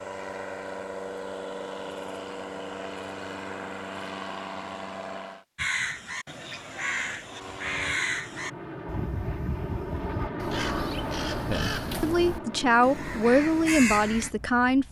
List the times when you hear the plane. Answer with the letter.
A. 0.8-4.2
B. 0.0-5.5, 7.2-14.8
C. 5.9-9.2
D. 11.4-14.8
B.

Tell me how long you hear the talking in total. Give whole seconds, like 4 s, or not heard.
3 s.